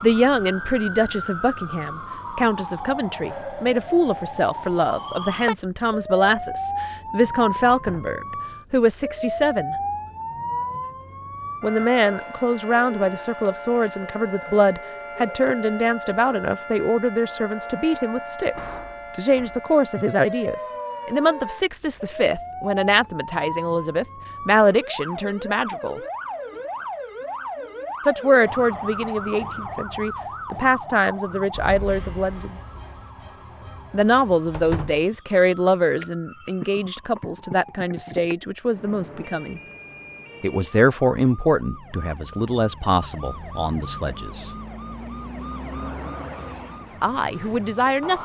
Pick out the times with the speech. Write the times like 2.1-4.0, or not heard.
0.0-9.8, 11.6-26.0, 28.1-32.5, 33.9-39.6, 40.4-44.5, 47.0-48.2.